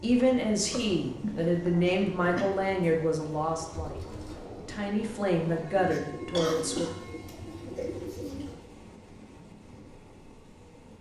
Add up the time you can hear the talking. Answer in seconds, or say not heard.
7 s.